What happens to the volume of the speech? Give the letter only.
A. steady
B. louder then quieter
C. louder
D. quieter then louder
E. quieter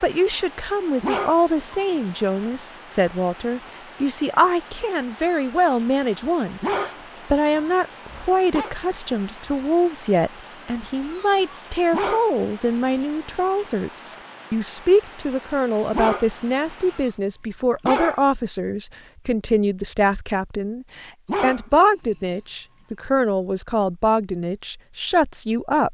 A.